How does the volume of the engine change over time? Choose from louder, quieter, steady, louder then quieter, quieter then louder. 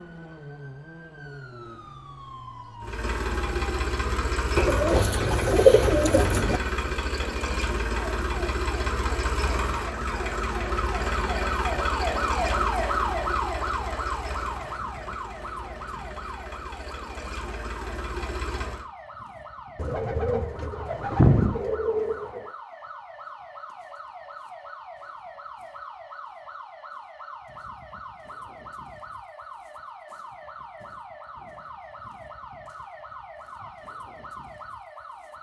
quieter.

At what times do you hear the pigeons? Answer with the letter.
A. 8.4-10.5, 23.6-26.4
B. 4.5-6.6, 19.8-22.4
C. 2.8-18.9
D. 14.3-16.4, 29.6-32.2
B.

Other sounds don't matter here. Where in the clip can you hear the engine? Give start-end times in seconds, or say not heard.
2.8-18.9.